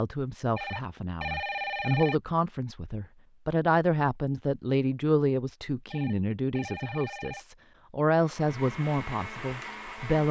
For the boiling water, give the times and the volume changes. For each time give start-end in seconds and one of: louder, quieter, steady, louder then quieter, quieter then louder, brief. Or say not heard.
not heard.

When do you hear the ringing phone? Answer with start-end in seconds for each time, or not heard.
0.6-2.1, 5.9-7.5.